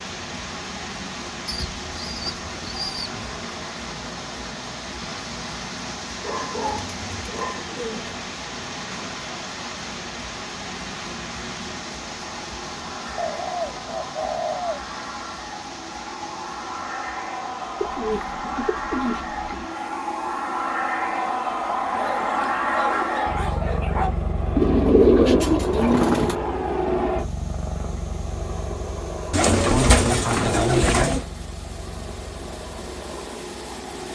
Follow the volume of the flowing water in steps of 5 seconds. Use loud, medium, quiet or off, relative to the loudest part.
loud, loud, loud, medium, quiet, quiet, medium.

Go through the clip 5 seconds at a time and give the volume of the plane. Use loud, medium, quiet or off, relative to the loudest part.
quiet, quiet, quiet, medium, loud, loud, medium.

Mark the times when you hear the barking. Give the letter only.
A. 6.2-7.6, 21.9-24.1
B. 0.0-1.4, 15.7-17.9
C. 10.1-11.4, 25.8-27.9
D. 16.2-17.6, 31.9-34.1
A.